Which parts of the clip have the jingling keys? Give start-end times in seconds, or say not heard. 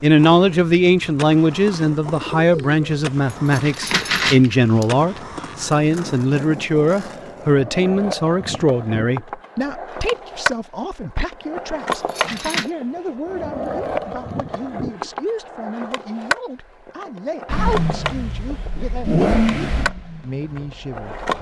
3.5-4.8, 11.9-12.7.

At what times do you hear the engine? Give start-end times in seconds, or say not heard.
17.4-21.3.